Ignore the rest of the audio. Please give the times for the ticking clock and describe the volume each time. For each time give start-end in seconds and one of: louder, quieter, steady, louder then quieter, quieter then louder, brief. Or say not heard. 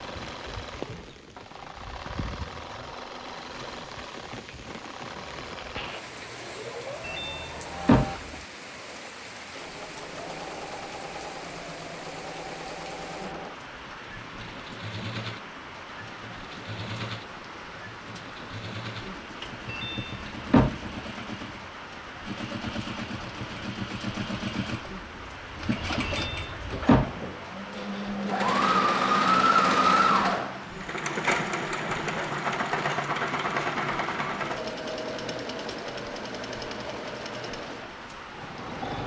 not heard.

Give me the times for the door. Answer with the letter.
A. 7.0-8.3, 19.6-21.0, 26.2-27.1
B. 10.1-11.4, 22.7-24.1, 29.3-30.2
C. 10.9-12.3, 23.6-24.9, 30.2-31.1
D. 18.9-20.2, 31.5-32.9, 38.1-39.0
A.